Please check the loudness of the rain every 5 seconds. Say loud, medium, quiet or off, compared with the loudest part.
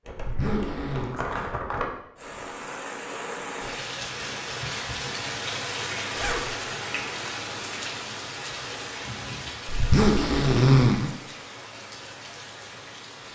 loud, loud, medium.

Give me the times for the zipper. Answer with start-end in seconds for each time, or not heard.
0.1-1.1, 6.1-6.5, 9.7-11.1.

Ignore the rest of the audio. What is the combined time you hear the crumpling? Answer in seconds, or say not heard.
2 s.